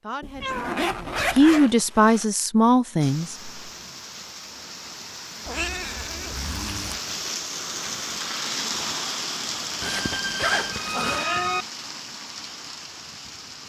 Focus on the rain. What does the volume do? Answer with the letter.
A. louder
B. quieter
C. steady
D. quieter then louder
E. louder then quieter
E.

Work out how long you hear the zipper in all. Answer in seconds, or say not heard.
4 s.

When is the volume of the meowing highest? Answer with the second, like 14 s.
11 s.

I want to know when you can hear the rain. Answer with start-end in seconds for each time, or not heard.
3.0-13.6.